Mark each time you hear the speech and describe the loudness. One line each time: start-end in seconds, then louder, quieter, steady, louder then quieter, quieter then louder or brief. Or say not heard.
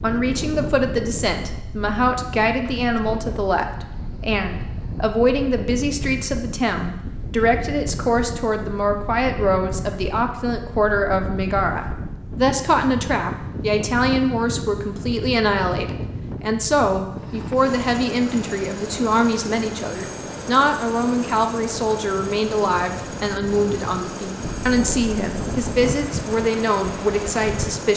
0.0-27.9 steady.